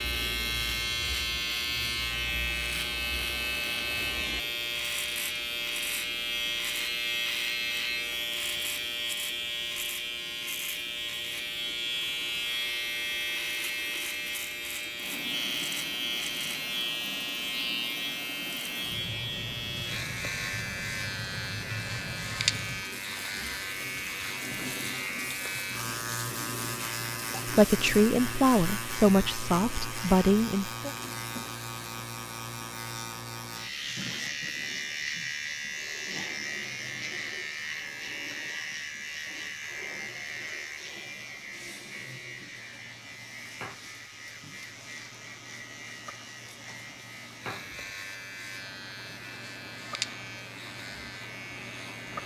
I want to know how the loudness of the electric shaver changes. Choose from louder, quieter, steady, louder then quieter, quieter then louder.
quieter.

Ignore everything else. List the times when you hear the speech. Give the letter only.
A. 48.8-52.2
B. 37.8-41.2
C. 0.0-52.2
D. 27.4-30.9
D.